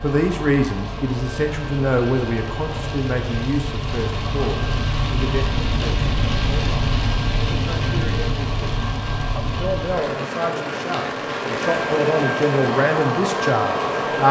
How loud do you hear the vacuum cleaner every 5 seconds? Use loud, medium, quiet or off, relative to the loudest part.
medium, medium, loud.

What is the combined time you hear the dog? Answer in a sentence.
The dog can't be heard in this clip.